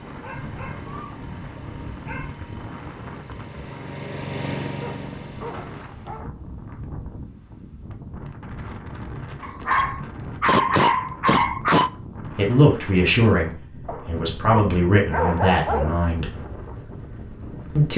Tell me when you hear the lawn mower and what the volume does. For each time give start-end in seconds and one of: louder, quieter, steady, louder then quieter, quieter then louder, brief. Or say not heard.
0.0-5.9 louder.